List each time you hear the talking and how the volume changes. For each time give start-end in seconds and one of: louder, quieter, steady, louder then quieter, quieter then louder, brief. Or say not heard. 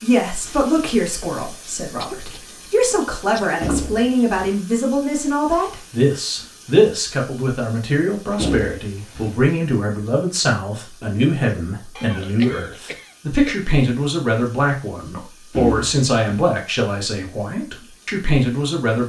0.0-19.0 steady.